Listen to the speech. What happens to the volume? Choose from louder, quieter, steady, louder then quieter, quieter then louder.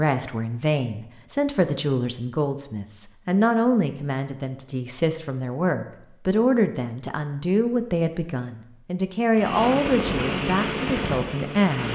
steady.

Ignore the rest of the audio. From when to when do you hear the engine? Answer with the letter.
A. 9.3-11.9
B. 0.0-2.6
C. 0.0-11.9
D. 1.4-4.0
A.